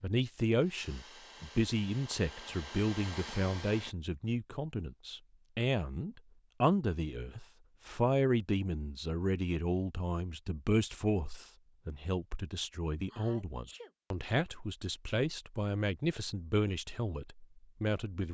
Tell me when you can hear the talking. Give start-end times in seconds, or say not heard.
0.0-18.3.